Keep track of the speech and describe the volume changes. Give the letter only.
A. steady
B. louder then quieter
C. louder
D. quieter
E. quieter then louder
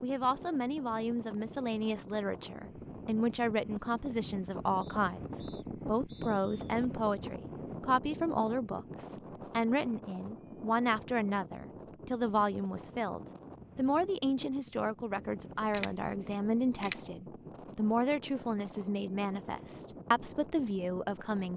A.